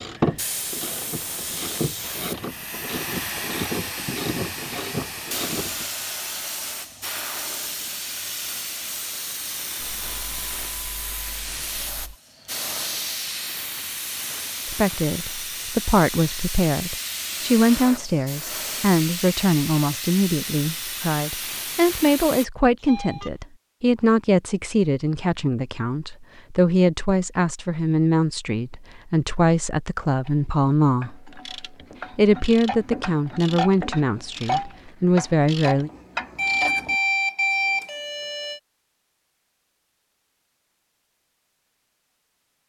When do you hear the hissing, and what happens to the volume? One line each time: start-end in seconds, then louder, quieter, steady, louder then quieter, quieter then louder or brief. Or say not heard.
0.1-22.4 steady.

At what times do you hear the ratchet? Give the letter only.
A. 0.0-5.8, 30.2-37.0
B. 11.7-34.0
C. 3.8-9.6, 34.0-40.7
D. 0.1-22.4
A.